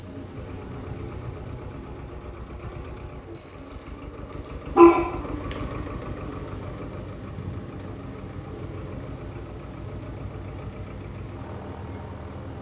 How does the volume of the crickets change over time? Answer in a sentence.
The volume of the crickets goes down, then up.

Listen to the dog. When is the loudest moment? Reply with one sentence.
The loudest moment of the dog is at 5 seconds.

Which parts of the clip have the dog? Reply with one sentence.
You can hear the dog from 3.4 to 5.5 s.